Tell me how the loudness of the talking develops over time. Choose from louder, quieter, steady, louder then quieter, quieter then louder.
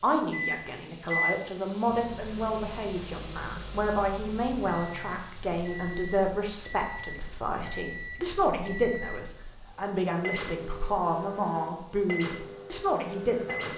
steady.